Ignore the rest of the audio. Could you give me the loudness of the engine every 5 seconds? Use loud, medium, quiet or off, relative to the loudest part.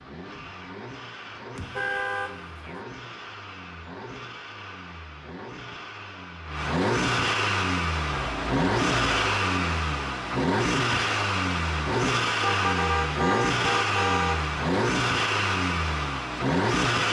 quiet, loud, loud, loud.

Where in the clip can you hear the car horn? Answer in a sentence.
The car horn can be heard from 1.6 to 2.9 s, from 8.1 to 9.4 s and from 12.4 to 14.5 s.